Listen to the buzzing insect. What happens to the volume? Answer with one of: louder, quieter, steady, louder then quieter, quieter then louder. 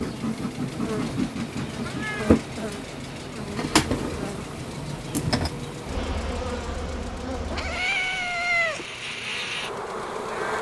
quieter.